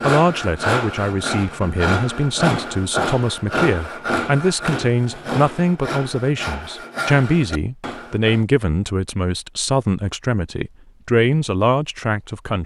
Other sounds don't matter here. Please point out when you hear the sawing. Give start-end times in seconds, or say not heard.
0.0-8.4.